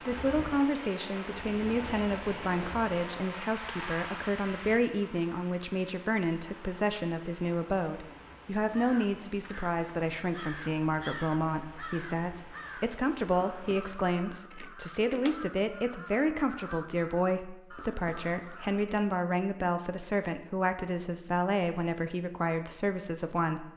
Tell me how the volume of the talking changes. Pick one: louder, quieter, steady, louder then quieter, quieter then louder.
steady.